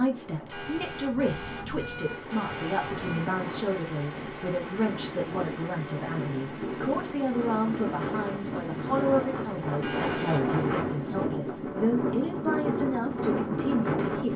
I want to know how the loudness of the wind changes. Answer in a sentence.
The loudness of the wind goes up.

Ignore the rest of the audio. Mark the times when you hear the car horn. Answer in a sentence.
You can hear the car horn from 0.5 to 3.2 s and from 9.8 to 10.6 s.